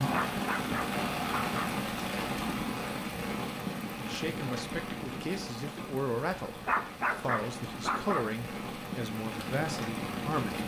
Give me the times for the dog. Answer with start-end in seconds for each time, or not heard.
0.1-1.8, 6.7-8.3.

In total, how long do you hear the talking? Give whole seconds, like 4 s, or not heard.
7 s.